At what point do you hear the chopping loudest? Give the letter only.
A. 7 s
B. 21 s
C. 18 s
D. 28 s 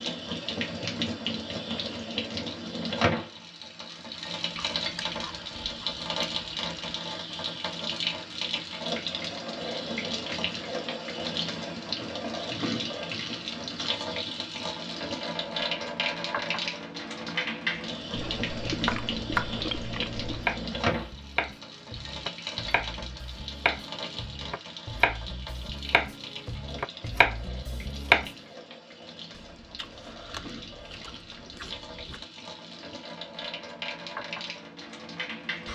D.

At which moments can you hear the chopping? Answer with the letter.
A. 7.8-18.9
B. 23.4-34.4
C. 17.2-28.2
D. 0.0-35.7
C.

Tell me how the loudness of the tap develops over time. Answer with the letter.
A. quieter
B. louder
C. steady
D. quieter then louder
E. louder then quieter
A.